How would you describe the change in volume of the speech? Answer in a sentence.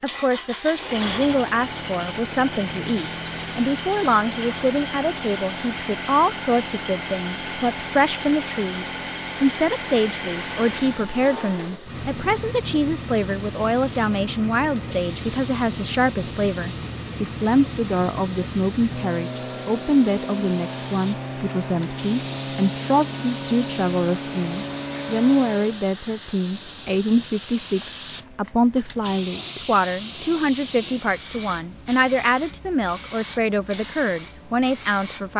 The volume of the speech stays about the same.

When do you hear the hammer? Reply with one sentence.
The hammer can't be heard in this clip.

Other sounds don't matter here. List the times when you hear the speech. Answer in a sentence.
The speech can be heard from 0.0 to 35.3 s.